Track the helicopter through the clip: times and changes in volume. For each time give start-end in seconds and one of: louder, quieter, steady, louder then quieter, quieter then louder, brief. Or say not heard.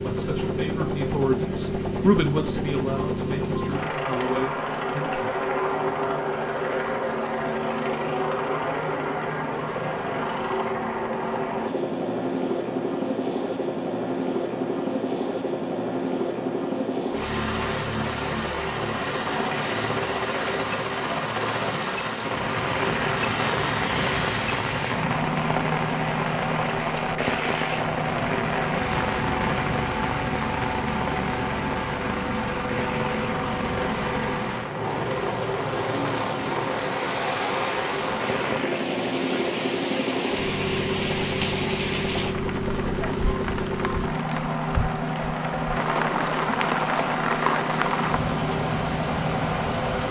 0.0-50.0 steady.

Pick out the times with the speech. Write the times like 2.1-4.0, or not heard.
0.0-5.4.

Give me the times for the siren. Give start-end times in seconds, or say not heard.
not heard.